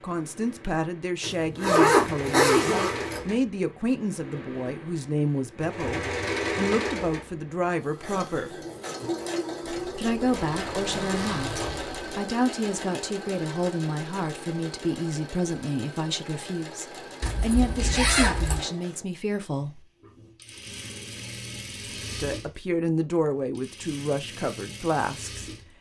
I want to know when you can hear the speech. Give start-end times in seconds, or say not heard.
0.0-8.6, 9.9-19.9, 22.1-25.5.